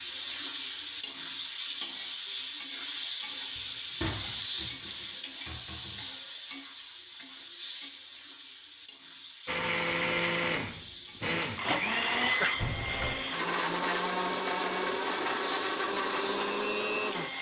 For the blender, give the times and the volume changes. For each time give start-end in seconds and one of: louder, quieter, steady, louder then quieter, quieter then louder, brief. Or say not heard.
9.4-17.3 steady.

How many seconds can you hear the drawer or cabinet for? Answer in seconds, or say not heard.
3 s.